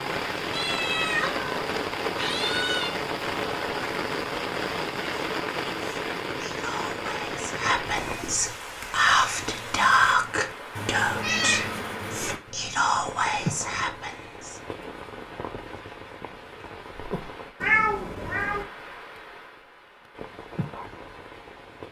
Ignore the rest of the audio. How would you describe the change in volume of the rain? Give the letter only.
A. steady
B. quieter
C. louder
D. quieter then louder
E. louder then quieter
B.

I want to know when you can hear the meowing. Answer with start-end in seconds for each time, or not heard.
0.5-3.0, 10.8-12.4, 17.6-18.6.